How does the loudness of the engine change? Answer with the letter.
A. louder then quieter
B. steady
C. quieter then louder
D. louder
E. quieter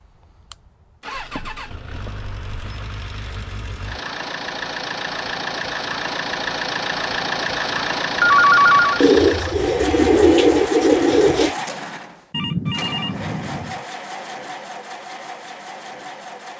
A.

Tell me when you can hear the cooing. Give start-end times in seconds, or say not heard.
9.0-11.6.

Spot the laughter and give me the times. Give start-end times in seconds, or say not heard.
not heard.